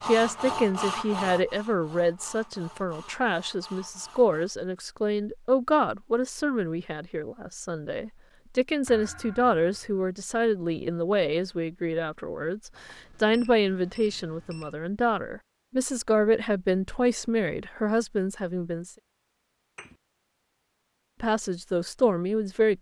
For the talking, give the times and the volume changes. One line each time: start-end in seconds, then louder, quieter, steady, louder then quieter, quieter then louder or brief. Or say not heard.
0.1-18.9 steady
21.2-22.7 brief.